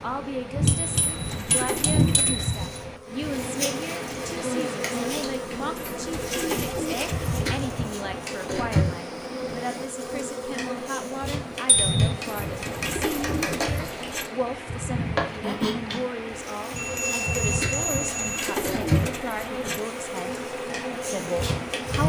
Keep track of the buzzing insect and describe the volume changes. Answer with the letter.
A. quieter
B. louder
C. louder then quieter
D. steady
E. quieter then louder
D.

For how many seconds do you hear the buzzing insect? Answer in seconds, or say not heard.
22 s.